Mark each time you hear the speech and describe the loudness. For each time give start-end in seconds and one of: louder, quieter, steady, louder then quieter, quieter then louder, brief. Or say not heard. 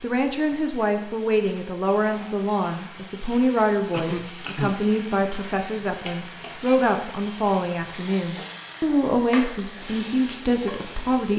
0.0-11.3 steady.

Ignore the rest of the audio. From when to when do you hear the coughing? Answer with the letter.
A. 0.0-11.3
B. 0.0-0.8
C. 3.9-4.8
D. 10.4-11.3
C.